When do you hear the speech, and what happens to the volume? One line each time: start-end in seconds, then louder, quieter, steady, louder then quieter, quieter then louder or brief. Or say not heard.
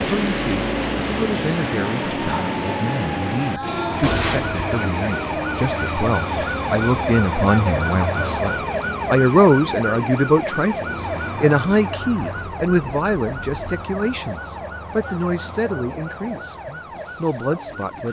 0.1-18.0 louder then quieter.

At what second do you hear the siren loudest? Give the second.
8 s.